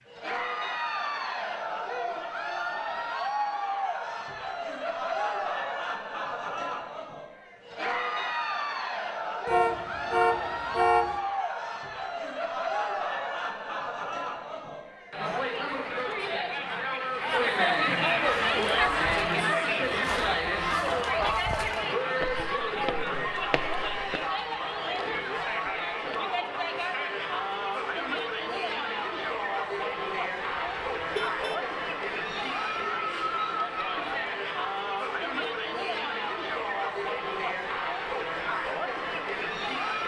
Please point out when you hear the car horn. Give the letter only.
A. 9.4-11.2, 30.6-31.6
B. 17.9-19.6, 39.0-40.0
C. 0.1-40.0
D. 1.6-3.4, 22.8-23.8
A.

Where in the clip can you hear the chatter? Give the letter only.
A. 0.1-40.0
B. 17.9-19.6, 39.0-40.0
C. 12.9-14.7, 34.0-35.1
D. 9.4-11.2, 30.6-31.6
A.